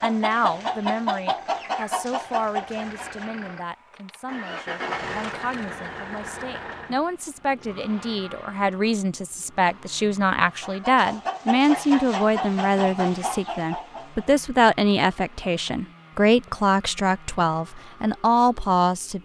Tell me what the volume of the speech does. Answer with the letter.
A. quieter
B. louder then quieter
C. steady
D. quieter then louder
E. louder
E.